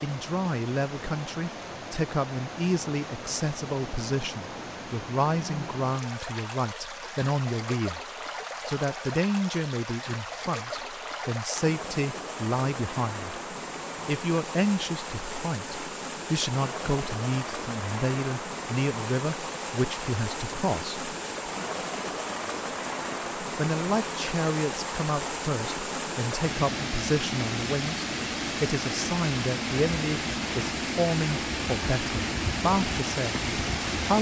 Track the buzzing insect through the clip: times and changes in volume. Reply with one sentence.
You can't hear the buzzing insect here.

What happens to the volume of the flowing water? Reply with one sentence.
The loudness of the flowing water goes up.